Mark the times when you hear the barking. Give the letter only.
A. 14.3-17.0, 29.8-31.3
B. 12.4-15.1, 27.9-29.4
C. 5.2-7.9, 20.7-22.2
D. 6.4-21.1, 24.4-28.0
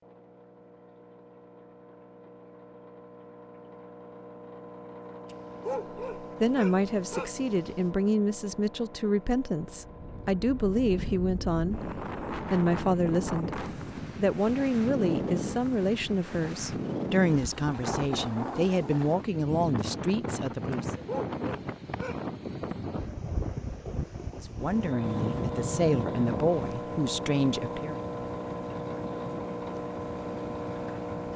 C.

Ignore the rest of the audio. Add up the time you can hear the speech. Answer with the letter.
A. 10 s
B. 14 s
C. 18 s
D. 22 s
C.